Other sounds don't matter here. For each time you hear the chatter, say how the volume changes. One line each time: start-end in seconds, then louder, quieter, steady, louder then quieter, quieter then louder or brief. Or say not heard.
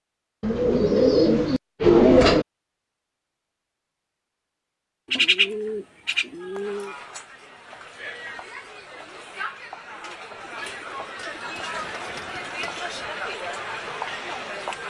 6.5-14.8 louder.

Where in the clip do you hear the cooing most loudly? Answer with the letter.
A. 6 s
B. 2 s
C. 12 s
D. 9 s
B.